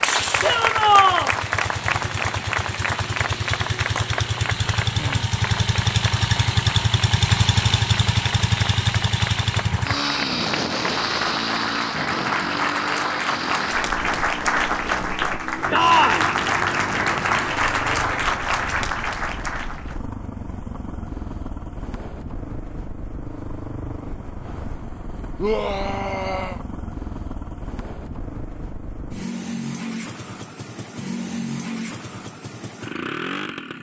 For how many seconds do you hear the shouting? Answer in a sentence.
The shouting can be heard for 3 seconds in total.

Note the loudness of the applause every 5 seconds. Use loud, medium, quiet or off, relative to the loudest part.
loud, medium, loud, loud, off, off, off.